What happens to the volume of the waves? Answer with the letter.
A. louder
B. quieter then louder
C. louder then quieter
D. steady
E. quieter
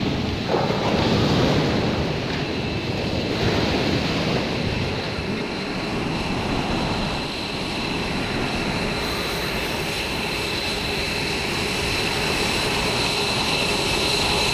E.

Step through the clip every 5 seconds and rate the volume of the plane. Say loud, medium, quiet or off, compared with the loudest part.
medium, medium, loud.